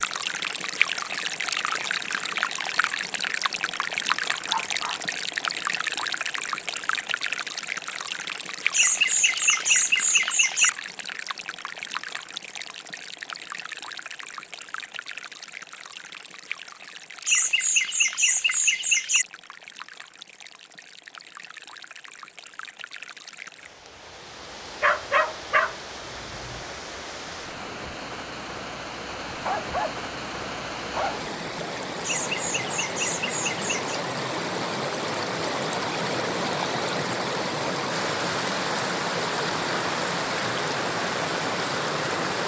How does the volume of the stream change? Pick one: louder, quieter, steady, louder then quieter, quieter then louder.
quieter then louder.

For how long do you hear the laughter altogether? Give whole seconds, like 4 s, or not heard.
6 s.